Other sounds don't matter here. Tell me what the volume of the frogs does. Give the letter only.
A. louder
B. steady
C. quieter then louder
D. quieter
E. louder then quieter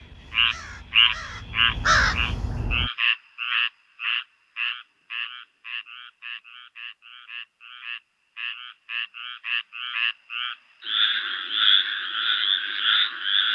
C.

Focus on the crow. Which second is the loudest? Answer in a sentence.
The loudest moment of the crow is at 2 seconds.